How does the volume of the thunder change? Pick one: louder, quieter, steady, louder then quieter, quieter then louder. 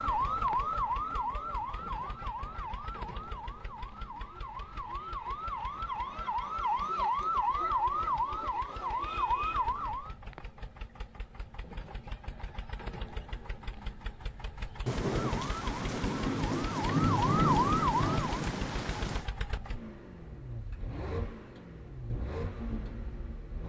louder then quieter.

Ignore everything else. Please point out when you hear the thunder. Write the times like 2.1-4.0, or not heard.
14.8-19.2.